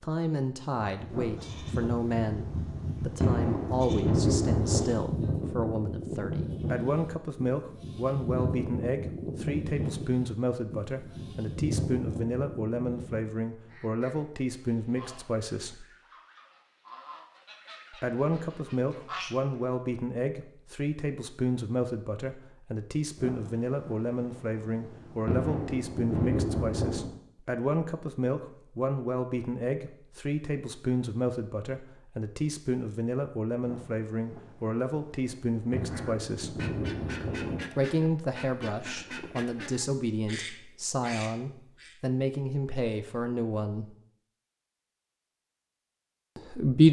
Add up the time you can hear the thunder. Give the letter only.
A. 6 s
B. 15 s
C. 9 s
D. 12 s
D.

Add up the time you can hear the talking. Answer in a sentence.
The talking can be heard for 41 seconds in total.